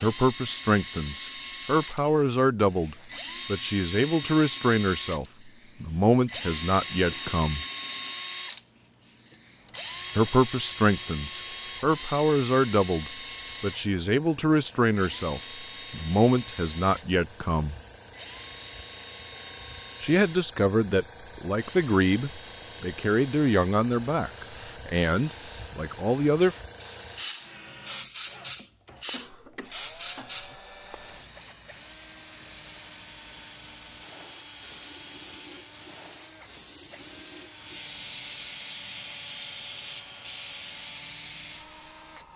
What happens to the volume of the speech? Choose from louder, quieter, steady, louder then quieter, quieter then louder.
steady.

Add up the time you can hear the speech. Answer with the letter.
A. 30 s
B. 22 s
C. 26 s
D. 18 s
B.